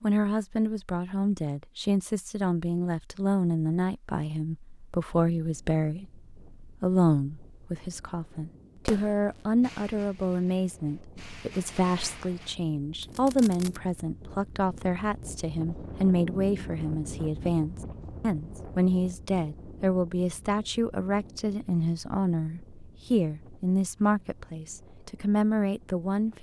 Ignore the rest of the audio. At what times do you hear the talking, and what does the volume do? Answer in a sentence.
The talking can be heard from 0.0 to 26.3 s, at a steady volume.